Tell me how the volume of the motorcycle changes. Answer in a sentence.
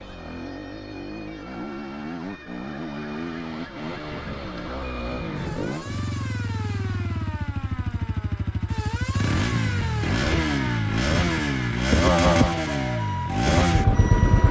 The volume of the motorcycle goes up.